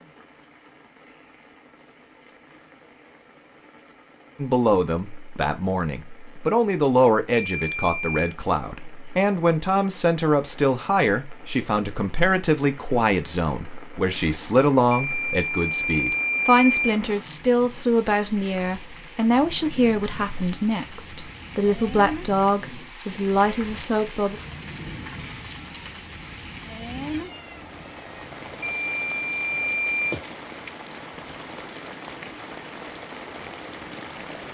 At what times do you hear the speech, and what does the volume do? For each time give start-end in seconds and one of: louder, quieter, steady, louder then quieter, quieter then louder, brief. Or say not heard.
4.3-24.4 steady.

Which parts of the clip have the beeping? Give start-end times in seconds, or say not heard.
7.3-8.3, 14.9-16.9, 28.6-30.0.